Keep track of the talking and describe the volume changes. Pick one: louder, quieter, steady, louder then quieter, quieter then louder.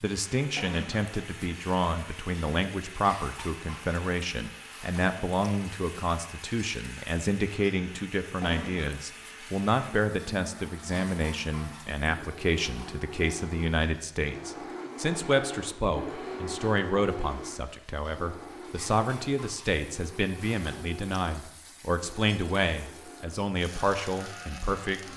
steady.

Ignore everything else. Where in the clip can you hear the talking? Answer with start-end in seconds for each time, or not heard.
0.0-25.0.